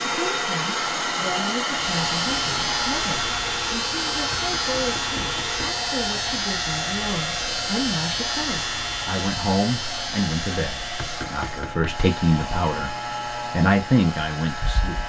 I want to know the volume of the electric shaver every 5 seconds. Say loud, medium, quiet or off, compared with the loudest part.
loud, loud, medium.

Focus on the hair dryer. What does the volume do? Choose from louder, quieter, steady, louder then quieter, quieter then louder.
quieter.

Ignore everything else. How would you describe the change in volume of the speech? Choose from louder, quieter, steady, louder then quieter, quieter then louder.
louder.